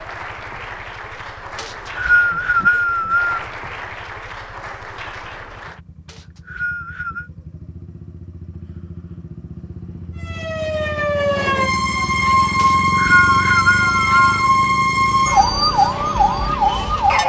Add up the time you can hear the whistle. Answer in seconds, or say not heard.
5 s.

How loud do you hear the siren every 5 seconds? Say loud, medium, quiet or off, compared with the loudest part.
off, off, loud, loud.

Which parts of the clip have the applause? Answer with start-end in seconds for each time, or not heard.
0.0-5.8.